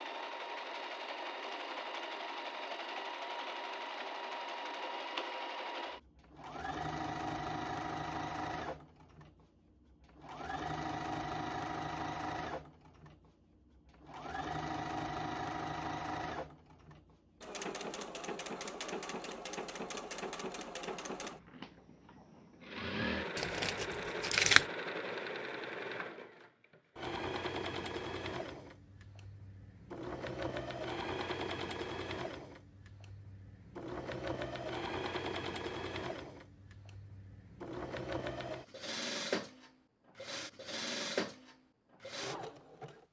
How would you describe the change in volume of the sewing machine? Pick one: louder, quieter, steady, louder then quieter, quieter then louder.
steady.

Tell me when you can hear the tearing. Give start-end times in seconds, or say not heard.
23.4-24.6.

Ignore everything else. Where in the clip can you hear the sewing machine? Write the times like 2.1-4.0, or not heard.
0.0-43.0.